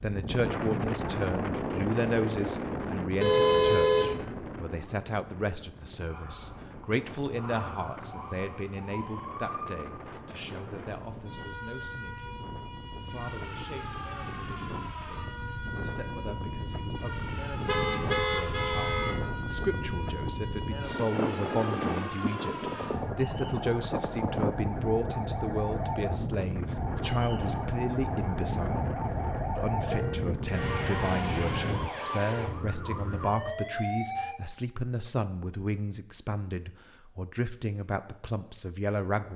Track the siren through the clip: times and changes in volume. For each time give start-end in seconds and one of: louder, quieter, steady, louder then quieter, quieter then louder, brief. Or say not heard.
6.0-34.4 louder.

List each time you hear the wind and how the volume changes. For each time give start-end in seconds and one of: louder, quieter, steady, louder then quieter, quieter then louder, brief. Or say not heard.
0.0-31.9 quieter then louder.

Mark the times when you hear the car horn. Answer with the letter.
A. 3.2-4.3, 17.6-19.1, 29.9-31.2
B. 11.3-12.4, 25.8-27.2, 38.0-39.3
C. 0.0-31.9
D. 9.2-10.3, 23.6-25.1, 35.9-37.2
A.